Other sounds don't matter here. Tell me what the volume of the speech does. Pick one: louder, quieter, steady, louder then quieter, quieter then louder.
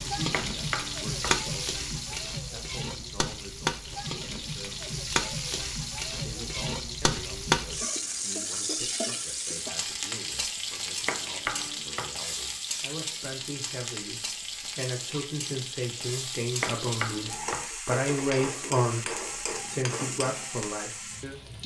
louder.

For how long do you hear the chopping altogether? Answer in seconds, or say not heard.
3 s.